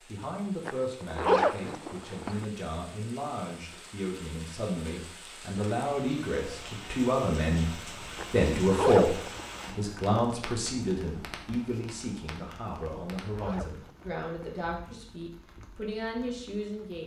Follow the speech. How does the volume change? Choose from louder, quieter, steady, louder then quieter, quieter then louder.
louder then quieter.